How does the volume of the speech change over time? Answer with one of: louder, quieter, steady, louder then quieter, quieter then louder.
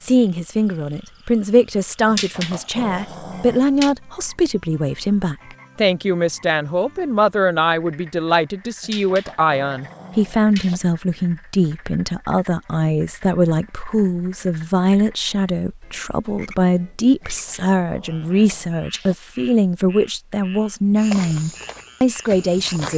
steady.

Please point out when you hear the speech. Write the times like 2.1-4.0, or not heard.
0.0-22.9.